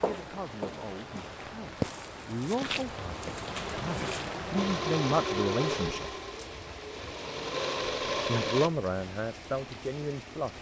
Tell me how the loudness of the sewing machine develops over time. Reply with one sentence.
The loudness of the sewing machine goes down, then up.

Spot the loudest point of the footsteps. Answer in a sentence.
The volume of the footsteps peaks at 2 seconds.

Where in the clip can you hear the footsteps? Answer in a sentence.
You can hear the footsteps from 0.0 to 4.4 s.